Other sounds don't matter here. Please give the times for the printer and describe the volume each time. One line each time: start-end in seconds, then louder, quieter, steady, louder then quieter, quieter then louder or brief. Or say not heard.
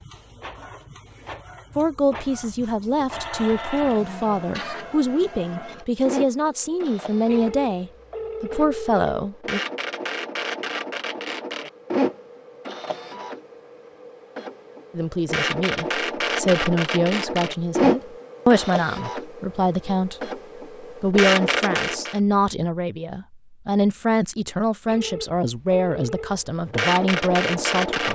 0.0-22.2 louder
26.2-28.1 brief.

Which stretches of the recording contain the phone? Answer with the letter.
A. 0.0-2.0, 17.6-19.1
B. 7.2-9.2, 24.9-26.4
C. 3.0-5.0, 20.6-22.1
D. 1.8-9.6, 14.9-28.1
B.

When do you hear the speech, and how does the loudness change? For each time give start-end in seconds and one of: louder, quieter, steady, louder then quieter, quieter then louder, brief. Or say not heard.
1.8-9.6 steady
14.9-28.1 steady.